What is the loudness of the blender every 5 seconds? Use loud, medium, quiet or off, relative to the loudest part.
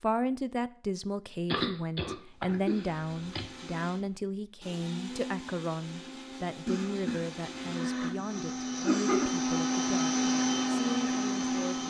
quiet, medium, loud.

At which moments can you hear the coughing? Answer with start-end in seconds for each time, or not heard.
1.5-3.5, 6.7-9.3.